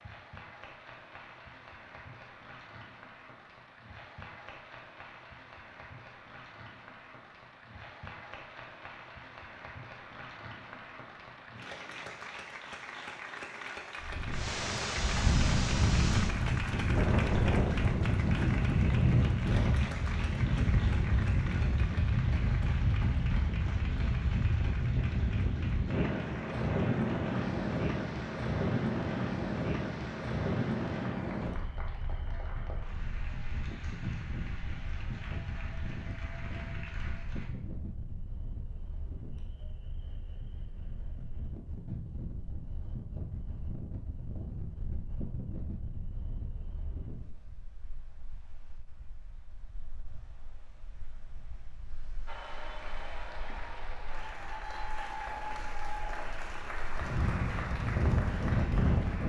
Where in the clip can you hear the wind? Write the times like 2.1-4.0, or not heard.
14.0-59.2.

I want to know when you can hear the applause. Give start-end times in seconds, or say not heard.
0.0-37.5, 52.2-59.2.